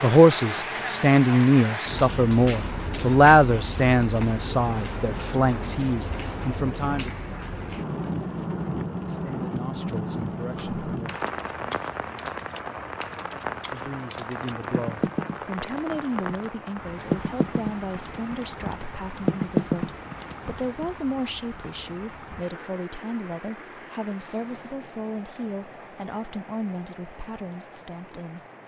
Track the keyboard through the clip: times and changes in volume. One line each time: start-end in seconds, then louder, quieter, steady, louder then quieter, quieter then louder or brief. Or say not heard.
10.5-20.9 louder.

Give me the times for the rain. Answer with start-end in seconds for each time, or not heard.
0.0-28.6.